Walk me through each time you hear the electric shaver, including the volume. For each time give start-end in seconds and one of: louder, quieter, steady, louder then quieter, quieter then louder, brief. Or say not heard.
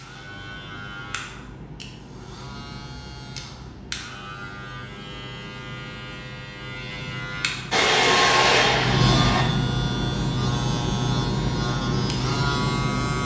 0.0-13.2 louder.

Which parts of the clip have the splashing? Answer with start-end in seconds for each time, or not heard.
not heard.